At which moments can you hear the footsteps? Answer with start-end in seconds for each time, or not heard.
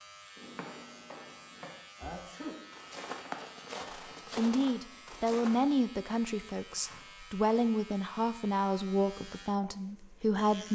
0.3-5.7.